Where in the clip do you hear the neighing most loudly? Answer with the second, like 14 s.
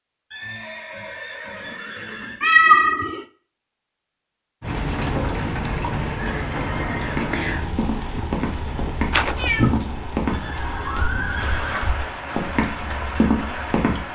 11 s.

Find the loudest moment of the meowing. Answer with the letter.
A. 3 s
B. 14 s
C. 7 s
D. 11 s
A.